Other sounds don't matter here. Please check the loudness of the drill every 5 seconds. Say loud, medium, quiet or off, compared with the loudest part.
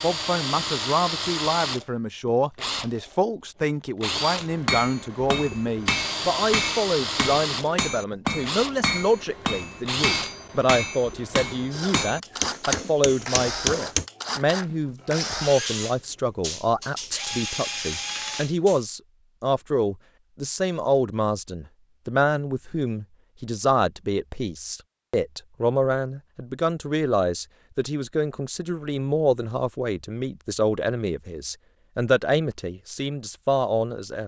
loud, loud, loud, loud, off, off, off.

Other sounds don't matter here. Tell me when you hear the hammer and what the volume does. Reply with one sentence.
You can hear the hammer from 4.3 to 14.1 s, at a steady volume.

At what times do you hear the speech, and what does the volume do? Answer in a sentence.
The speech can be heard from 0.0 to 34.2 s, at a steady volume.